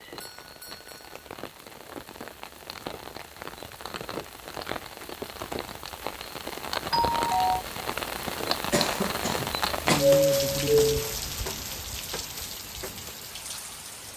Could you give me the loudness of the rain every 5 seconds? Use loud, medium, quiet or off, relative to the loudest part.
medium, loud, loud.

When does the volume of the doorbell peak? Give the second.
10 s.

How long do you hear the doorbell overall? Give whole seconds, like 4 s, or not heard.
3 s.